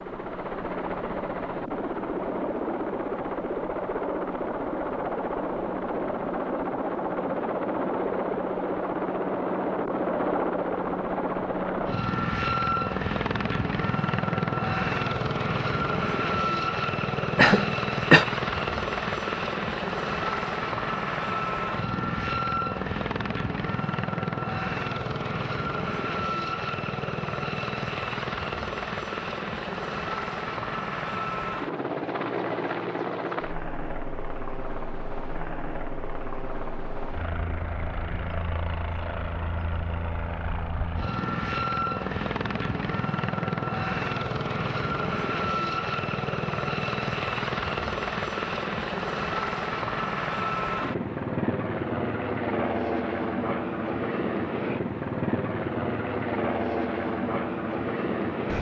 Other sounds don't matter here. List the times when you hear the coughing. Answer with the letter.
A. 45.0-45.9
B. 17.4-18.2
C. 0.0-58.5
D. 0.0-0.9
B.